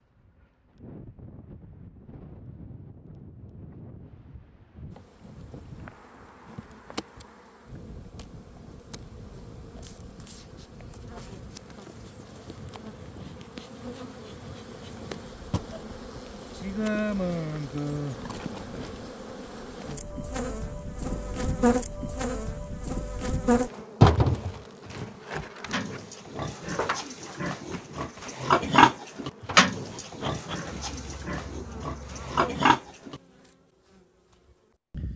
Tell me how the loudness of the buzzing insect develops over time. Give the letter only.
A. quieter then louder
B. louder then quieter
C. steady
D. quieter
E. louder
B.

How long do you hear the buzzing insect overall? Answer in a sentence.
You can hear the buzzing insect for 30 seconds altogether.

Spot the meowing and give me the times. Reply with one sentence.
You can't hear the meowing here.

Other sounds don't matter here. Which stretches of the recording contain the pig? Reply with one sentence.
You can hear the pig from 25.7 to 33.2 s.